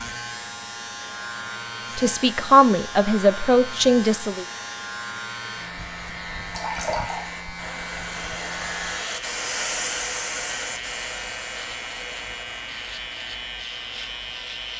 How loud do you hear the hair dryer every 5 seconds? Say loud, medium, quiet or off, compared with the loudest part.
medium, loud, loud.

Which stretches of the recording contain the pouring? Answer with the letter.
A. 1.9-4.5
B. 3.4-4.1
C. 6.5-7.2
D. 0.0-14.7
C.